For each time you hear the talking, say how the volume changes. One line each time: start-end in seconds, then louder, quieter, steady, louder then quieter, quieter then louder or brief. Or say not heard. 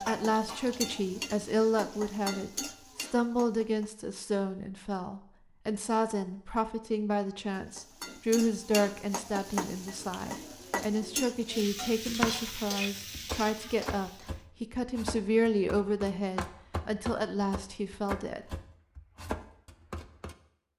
0.1-18.6 steady.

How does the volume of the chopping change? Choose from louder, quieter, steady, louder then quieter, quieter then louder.
steady.